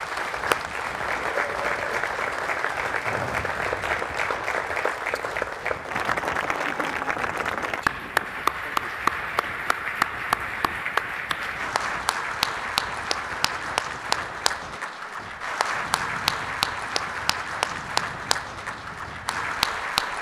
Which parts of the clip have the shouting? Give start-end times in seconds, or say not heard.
not heard.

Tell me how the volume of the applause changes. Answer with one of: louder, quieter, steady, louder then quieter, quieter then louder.
steady.